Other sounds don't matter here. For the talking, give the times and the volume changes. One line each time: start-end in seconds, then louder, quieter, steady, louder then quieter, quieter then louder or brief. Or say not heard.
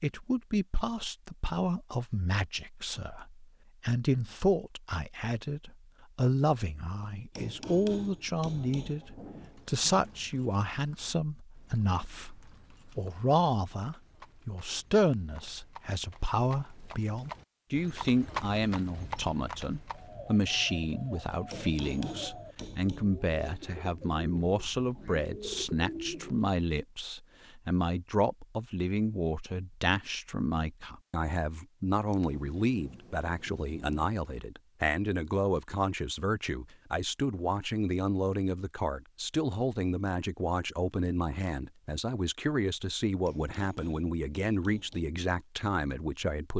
0.0-46.5 steady.